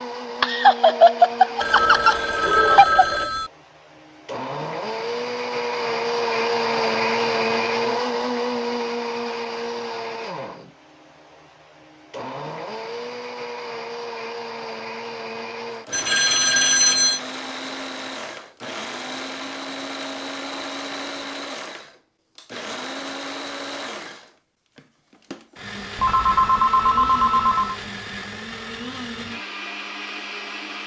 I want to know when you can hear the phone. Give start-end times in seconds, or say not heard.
1.6-3.5, 15.9-17.2, 25.9-27.8.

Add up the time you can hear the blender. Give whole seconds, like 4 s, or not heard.
31 s.